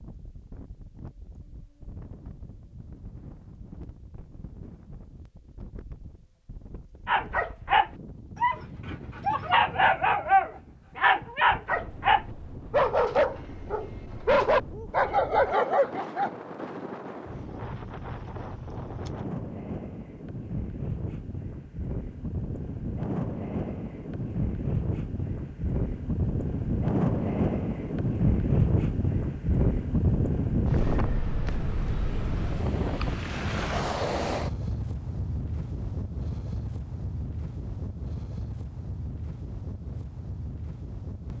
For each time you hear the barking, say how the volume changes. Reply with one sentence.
The barking can be heard from 7.0 to 16.3 s, at a steady volume.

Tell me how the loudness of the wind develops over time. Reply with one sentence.
The loudness of the wind goes up, then down.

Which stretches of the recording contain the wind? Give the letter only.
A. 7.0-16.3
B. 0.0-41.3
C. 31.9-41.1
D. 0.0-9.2
B.